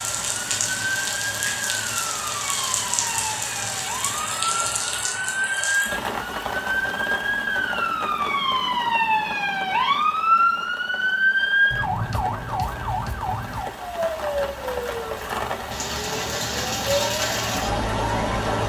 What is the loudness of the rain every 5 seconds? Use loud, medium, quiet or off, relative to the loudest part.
loud, medium, medium, loud.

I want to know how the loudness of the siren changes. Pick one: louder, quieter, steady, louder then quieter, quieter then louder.
louder then quieter.